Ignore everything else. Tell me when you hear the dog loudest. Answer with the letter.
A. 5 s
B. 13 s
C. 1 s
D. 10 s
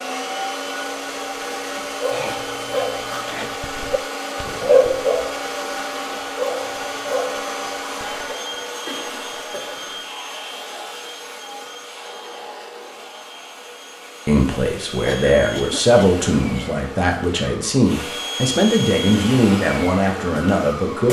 A.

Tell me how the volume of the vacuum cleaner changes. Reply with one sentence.
The loudness of the vacuum cleaner goes down, then up.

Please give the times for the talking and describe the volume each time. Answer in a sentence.
You can hear the talking from 14.2 to 21.0 s, at a steady volume.